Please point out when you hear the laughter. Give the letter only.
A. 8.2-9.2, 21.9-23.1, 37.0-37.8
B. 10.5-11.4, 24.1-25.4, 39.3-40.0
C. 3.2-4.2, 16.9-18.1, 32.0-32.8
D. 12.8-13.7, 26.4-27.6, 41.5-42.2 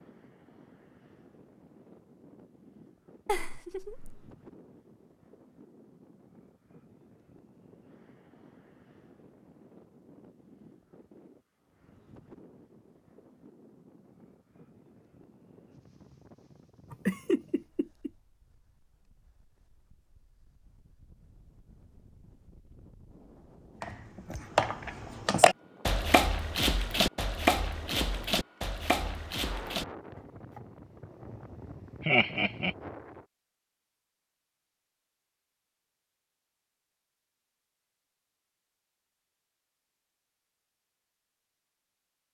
C.